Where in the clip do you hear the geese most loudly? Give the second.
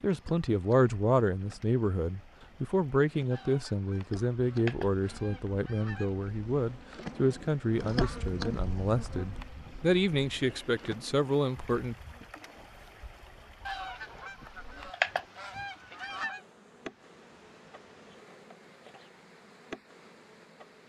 15 s.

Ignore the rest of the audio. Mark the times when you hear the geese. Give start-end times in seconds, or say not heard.
3.3-6.2, 13.7-16.4.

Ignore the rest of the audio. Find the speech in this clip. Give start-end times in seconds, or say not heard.
0.0-11.9.